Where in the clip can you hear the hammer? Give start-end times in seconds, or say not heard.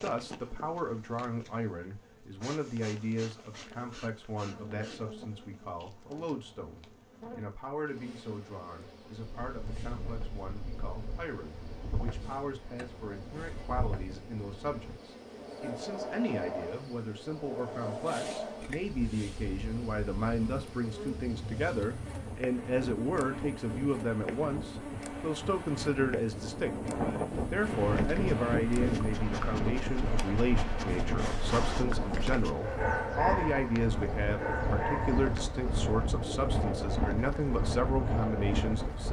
not heard.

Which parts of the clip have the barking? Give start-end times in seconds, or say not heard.
27.9-35.5.